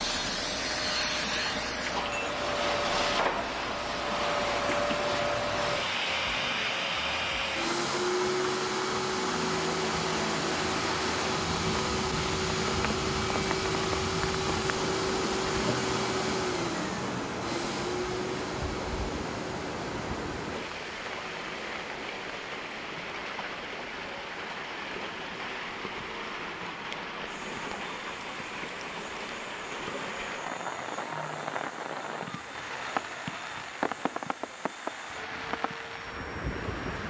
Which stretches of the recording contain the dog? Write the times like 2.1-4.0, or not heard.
not heard.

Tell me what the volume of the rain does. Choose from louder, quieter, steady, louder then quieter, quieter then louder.
steady.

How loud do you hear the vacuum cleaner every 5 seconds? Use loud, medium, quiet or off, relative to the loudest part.
loud, loud, loud, loud, quiet, quiet, quiet, quiet.